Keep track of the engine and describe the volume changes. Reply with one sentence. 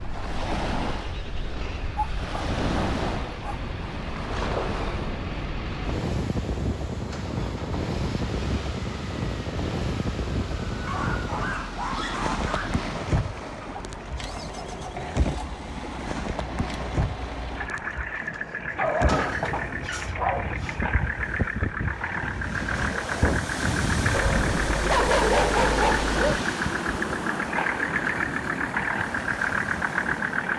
The volume of the engine goes up.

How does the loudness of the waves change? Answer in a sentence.
The loudness of the waves stays about the same.